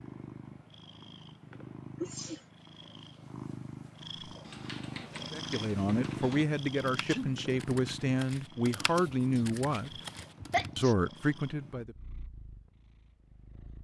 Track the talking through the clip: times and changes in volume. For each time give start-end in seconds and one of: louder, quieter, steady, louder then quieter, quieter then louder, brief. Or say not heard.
5.3-10.0 steady
10.8-11.9 brief.